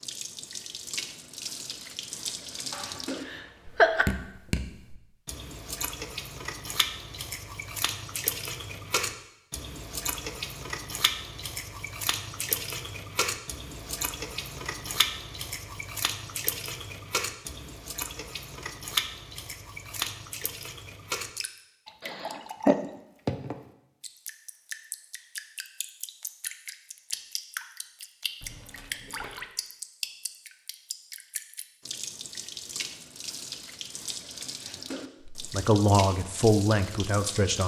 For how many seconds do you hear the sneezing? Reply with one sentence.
The sneezing can be heard for 3 seconds in total.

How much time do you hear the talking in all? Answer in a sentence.
The talking can be heard for 2 seconds in total.